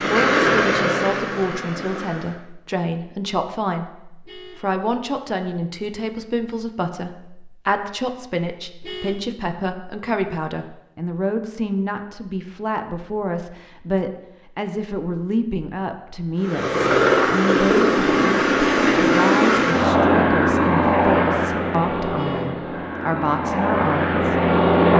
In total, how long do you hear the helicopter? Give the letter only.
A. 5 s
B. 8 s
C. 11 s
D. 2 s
C.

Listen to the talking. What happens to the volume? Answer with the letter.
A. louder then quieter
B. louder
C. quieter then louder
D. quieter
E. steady
E.